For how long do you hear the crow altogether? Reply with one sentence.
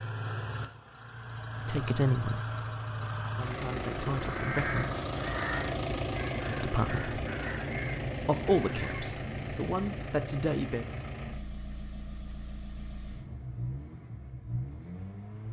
The crow can be heard for 5 seconds in total.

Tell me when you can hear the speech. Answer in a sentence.
The speech can be heard from 1.6 to 2.4 s, from 3.2 to 4.9 s, from 6.5 to 7.0 s and from 8.2 to 10.8 s.